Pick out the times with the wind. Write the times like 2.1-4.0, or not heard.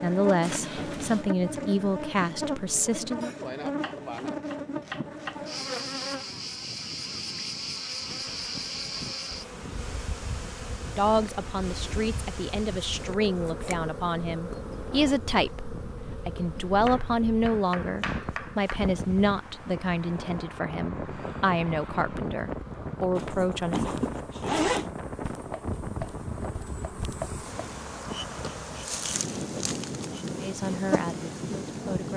0.0-32.1.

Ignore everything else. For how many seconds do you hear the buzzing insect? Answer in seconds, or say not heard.
32 s.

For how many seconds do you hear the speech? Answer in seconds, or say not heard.
18 s.